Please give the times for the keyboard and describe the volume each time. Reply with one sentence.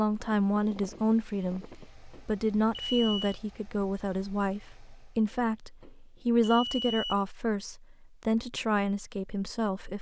You can't hear the keyboard here.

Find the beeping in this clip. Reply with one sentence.
You can hear the beeping from 1.6 to 3.4 s and from 5.3 to 7.2 s.